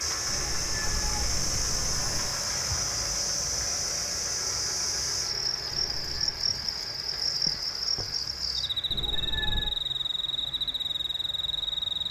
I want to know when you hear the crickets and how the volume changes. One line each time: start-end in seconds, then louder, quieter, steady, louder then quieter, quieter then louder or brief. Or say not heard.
0.0-12.0 steady.